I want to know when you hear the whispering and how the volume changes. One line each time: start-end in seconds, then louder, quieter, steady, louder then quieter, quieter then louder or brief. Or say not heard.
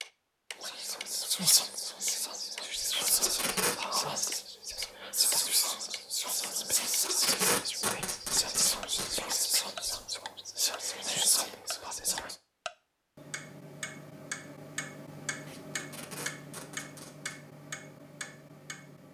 0.6-12.3 steady.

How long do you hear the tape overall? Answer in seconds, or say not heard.
5 s.